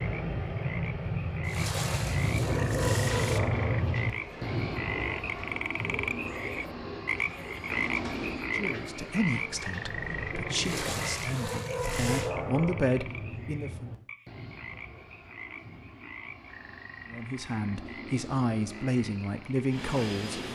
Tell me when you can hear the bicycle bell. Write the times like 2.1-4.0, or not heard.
not heard.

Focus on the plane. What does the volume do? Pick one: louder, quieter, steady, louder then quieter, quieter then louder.
quieter.